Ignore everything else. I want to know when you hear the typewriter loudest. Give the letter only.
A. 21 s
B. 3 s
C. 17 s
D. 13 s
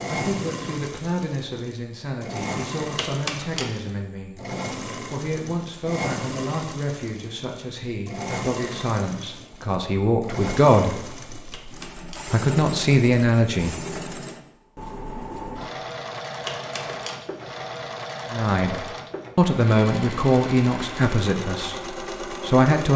B.